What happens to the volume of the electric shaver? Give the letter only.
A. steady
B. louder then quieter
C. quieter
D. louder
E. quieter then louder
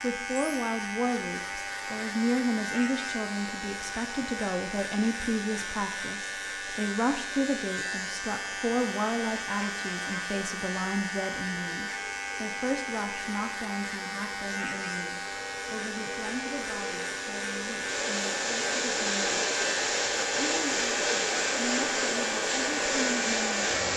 A.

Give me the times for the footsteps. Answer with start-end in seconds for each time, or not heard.
not heard.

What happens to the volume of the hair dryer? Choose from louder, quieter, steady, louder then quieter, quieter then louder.
louder.